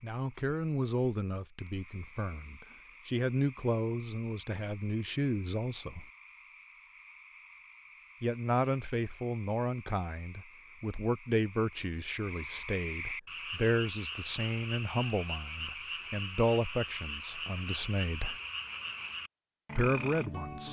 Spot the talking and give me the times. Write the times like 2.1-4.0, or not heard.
0.0-6.0, 8.2-18.4, 19.8-20.6.